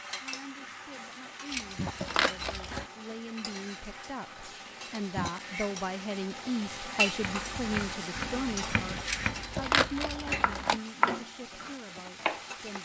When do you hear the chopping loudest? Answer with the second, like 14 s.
11 s.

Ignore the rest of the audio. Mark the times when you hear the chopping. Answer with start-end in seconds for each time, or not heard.
7.2-12.4.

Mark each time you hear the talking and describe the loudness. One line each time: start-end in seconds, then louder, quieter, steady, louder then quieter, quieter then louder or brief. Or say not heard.
0.2-12.7 louder then quieter.